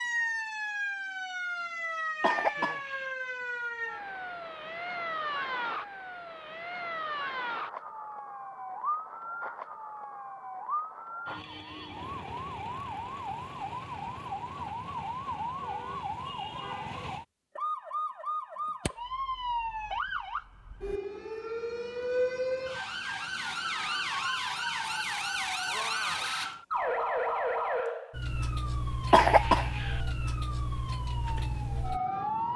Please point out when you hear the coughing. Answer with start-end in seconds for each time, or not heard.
2.2-3.1, 29.1-30.0.